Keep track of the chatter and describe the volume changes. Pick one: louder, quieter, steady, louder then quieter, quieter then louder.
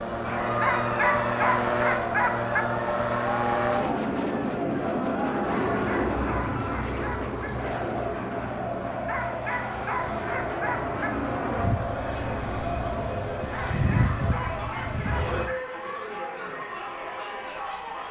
steady.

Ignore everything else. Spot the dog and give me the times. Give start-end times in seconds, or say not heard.
0.6-2.6, 5.5-7.5, 9.1-11.1, 13.5-15.4.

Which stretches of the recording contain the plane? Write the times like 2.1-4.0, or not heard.
0.0-15.5.